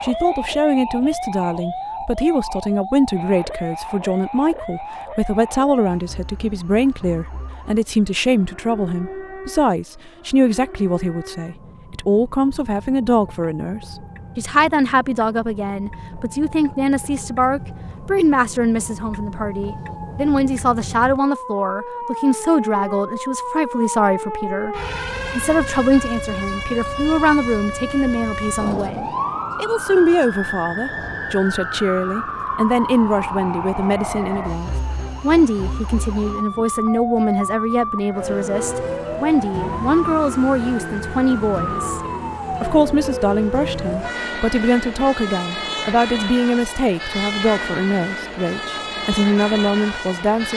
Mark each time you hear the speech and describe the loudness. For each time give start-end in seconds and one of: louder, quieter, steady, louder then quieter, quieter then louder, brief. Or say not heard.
0.0-50.5 steady.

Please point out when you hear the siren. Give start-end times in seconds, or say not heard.
0.0-50.5.